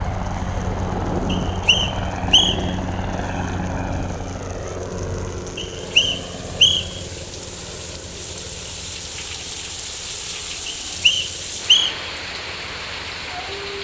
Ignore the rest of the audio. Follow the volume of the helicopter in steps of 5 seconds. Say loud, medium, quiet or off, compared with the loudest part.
loud, medium, quiet.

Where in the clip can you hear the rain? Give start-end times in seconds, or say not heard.
0.0-13.7.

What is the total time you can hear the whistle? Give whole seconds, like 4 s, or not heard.
4 s.